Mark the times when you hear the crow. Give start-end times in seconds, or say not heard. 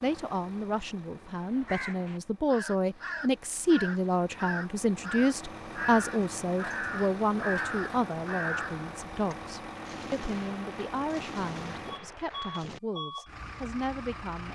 1.3-8.9.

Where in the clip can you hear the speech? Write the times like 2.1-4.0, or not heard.
0.0-14.5.